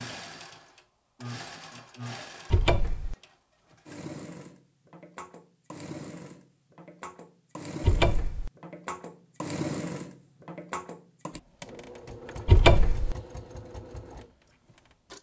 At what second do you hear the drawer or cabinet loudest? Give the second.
13 s.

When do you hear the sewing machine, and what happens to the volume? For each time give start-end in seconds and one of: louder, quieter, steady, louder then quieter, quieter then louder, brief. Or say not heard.
0.0-15.1 louder then quieter.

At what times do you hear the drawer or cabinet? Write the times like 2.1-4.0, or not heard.
2.5-3.1, 7.8-8.5, 12.4-13.2.